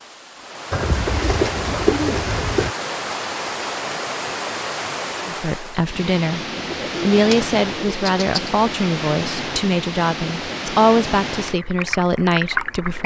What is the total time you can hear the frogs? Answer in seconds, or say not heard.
not heard.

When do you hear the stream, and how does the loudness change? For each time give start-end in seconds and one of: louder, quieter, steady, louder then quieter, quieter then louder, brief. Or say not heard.
0.0-13.0 steady.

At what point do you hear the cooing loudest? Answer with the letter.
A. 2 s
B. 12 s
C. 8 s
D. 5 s
A.